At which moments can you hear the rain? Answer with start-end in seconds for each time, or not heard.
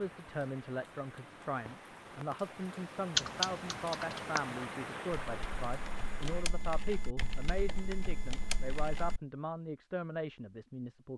0.0-6.5.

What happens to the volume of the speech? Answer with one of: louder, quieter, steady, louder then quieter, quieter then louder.
steady.